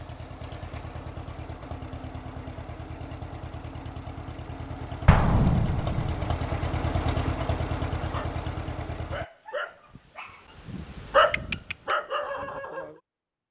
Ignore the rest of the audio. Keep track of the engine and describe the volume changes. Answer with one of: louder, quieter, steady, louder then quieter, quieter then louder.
louder.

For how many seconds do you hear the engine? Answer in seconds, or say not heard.
9 s.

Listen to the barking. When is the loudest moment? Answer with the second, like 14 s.
11 s.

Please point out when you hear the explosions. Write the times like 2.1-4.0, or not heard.
5.0-6.4.